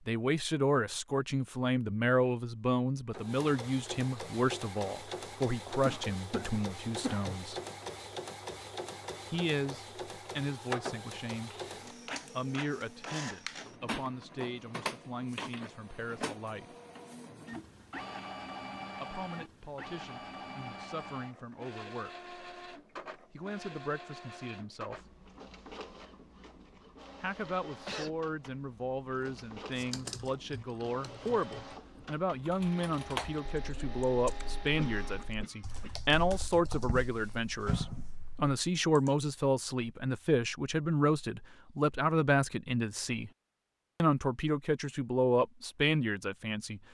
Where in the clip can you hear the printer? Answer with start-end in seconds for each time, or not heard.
3.1-35.4.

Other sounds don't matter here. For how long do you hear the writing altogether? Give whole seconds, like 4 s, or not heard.
not heard.